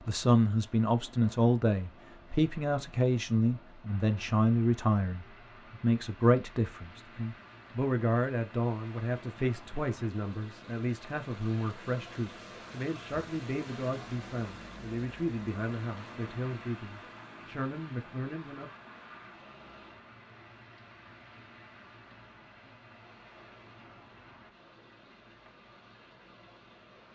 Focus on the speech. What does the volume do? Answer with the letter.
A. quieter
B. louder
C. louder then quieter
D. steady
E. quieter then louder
A.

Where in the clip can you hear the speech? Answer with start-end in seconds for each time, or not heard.
0.1-18.7.